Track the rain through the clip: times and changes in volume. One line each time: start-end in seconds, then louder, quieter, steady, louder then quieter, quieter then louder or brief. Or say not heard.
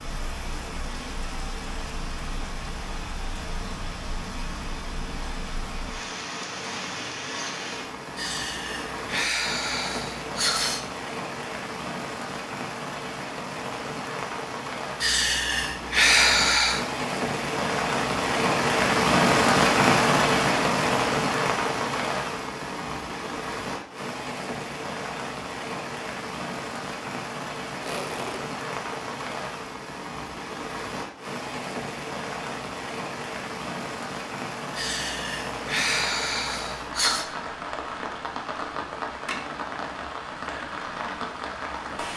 0.0-42.1 louder then quieter.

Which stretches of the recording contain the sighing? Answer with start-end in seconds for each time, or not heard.
8.2-10.8, 15.0-16.8, 34.8-37.2.